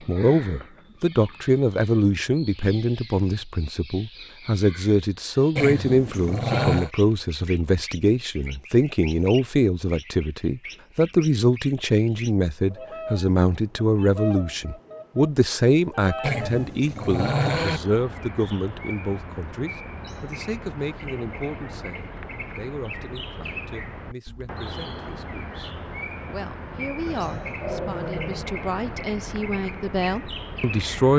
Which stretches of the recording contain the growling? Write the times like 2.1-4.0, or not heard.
5.5-6.9, 16.2-17.8, 27.1-28.5.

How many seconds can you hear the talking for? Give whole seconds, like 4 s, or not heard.
31 s.